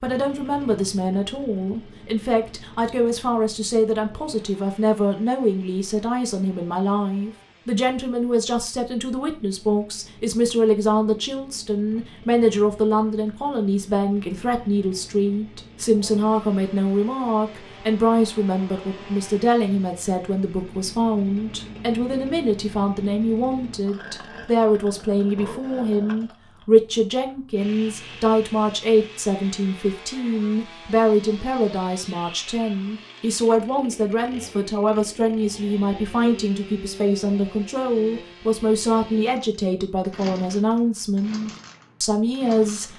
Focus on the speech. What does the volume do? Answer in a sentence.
The loudness of the speech stays about the same.